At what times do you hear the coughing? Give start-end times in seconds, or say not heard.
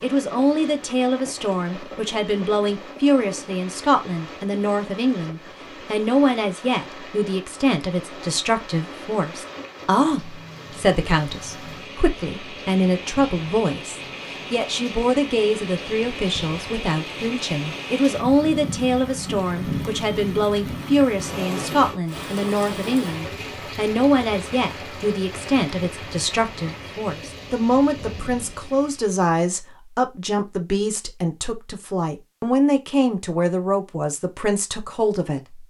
not heard.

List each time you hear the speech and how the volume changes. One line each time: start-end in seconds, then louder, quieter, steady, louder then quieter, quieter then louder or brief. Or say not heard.
0.0-35.6 steady.